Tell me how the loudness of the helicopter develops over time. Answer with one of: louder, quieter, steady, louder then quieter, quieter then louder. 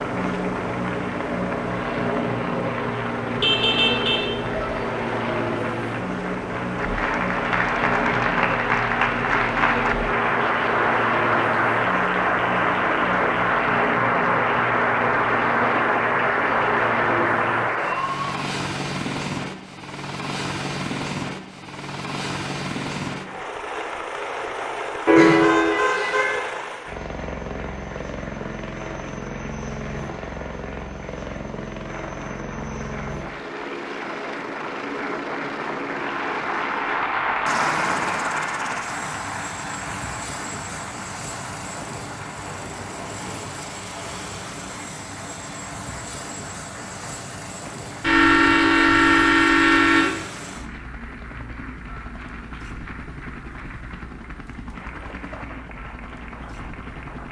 quieter.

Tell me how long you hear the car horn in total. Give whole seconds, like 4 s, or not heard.
5 s.